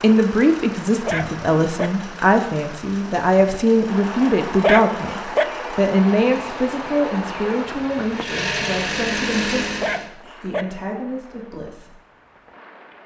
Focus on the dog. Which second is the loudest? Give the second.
5 s.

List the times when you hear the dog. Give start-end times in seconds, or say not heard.
1.1-1.9, 4.6-5.5, 9.8-10.7.